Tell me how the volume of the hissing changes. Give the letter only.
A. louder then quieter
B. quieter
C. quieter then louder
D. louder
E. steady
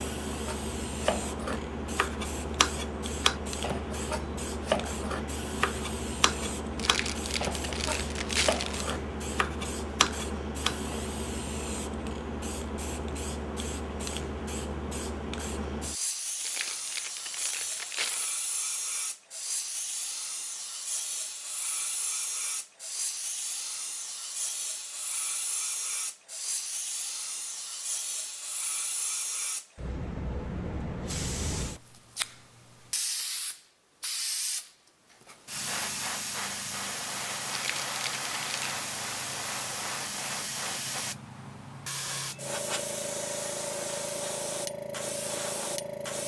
E.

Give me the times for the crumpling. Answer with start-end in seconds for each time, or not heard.
6.8-8.8, 16.4-18.4, 37.5-38.9.